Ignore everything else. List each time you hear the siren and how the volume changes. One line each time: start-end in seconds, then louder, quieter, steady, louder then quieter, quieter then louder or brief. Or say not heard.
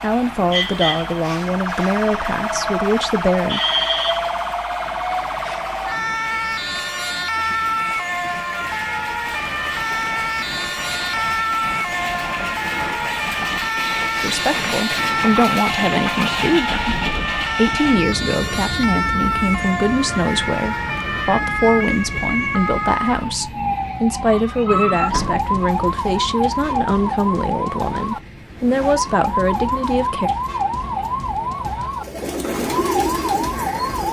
0.0-34.0 steady.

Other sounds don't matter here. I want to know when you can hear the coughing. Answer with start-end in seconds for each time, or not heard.
not heard.